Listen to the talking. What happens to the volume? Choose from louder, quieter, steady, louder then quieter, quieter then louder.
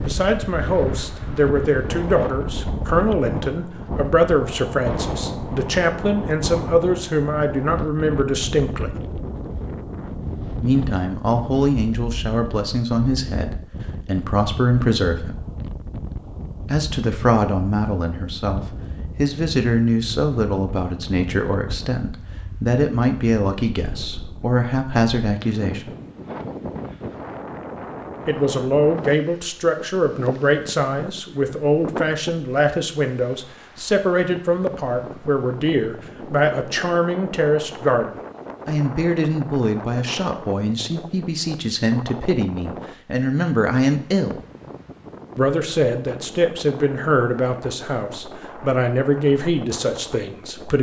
steady.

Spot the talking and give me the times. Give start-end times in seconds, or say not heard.
0.0-8.9, 10.6-15.3, 16.6-25.9, 28.2-44.4, 45.4-50.7.